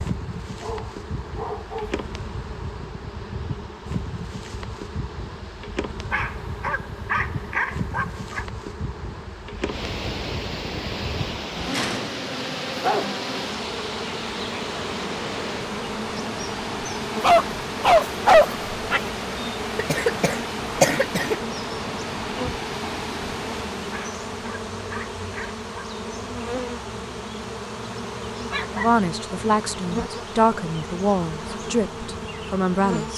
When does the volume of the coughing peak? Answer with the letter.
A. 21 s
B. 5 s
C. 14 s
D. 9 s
A.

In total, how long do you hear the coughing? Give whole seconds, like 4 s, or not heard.
2 s.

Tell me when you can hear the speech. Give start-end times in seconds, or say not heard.
28.8-33.1.